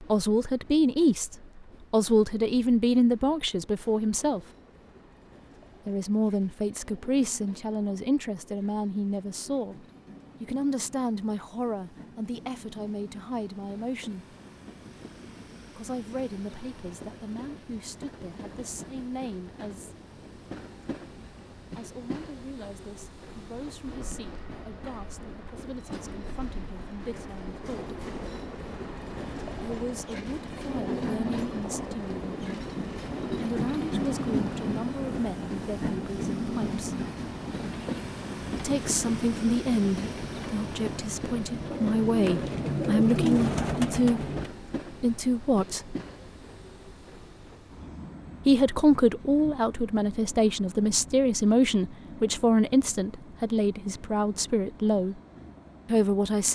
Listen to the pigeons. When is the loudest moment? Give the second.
43 s.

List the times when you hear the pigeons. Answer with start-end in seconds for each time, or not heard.
37.7-44.5.